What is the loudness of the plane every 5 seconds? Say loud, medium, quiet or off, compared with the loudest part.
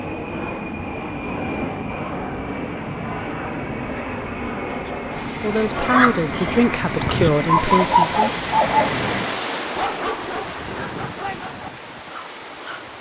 loud, loud, off.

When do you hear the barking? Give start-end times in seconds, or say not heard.
5.8-8.9, 9.8-12.9.